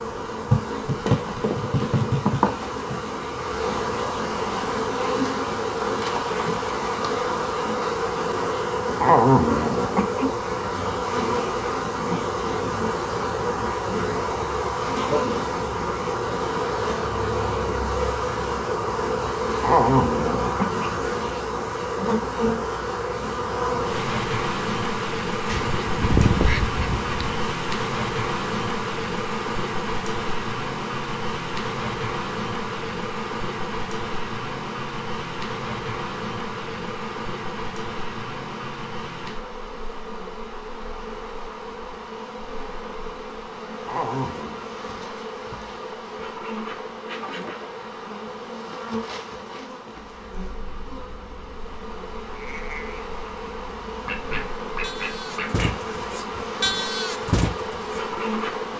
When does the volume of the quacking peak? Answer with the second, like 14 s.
26 s.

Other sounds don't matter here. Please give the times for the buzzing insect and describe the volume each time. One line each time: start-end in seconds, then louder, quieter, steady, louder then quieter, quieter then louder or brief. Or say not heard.
0.0-58.7 quieter.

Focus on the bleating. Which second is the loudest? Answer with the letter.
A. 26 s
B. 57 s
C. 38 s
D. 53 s
B.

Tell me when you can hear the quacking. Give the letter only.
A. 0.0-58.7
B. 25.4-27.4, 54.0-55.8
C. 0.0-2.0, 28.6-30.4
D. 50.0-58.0
B.